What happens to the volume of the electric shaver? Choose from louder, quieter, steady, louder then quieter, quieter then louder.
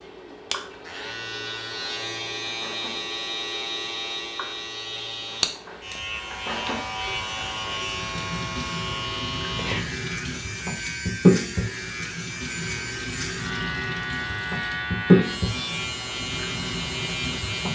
steady.